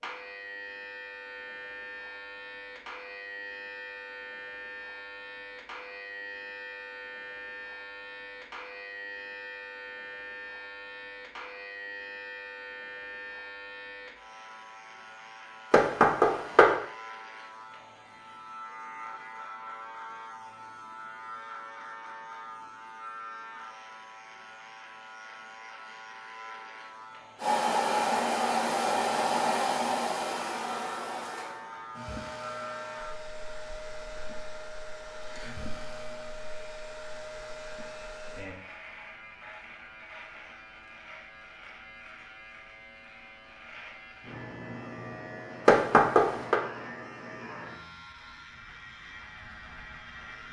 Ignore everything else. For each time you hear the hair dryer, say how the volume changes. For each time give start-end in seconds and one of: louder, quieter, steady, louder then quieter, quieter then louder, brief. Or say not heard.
27.4-38.5 quieter.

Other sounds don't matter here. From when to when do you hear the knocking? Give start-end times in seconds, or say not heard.
15.7-16.8, 45.6-46.6.